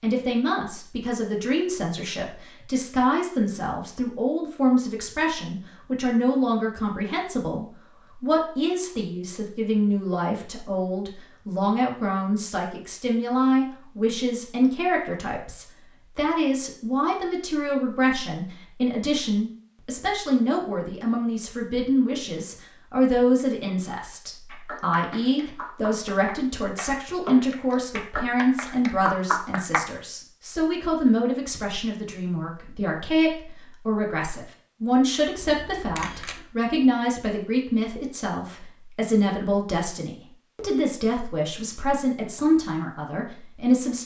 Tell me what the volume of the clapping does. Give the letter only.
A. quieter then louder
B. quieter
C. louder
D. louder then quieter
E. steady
C.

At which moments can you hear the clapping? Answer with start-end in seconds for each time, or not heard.
24.4-29.9.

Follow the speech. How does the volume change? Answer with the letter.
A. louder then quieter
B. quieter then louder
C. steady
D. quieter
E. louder
C.